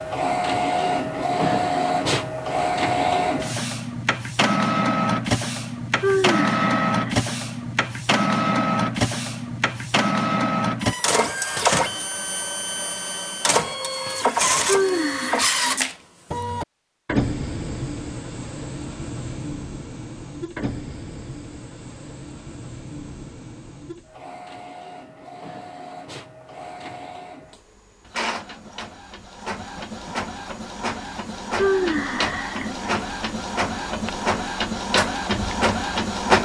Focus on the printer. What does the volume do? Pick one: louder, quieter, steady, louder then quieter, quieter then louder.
quieter then louder.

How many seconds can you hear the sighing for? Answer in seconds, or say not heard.
4 s.